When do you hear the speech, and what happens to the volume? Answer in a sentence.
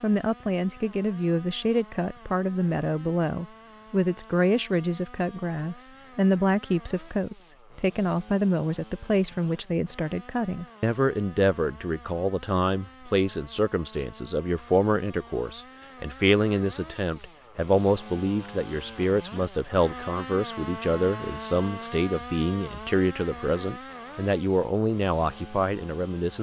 The speech can be heard from 0.0 to 26.3 s, at a steady volume.